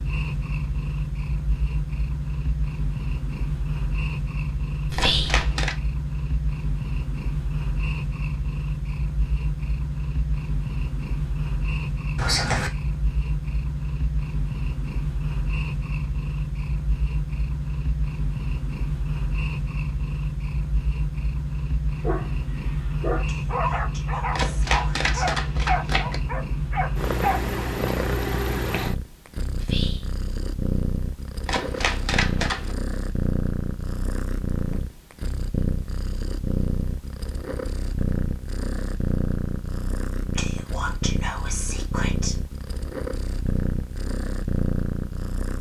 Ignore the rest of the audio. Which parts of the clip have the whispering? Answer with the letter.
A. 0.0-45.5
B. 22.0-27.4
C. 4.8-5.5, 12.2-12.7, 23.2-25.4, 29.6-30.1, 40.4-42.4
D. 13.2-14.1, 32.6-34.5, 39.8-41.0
C.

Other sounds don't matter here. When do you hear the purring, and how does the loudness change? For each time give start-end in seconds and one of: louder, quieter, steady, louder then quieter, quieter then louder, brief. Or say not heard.
0.0-45.5 steady.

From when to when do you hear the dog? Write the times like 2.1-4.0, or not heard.
22.0-27.4.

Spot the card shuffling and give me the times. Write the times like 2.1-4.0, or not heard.
5.0-5.8, 24.3-26.2, 31.4-32.8.